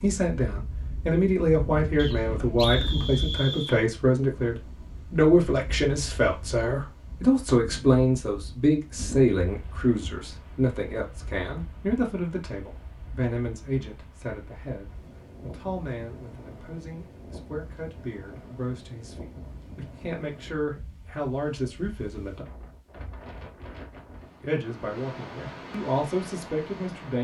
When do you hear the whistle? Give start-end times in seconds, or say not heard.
1.9-3.8.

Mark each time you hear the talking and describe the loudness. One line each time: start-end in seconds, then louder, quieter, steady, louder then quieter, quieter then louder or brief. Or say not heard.
0.0-22.4 quieter
24.4-27.1 brief.